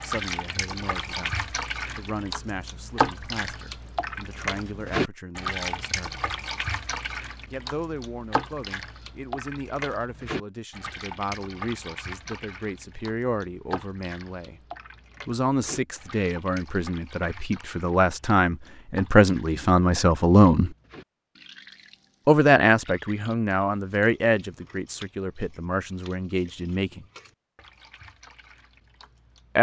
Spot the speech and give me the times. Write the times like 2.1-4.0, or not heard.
0.0-6.2, 7.5-14.6, 15.2-20.7, 22.2-27.1.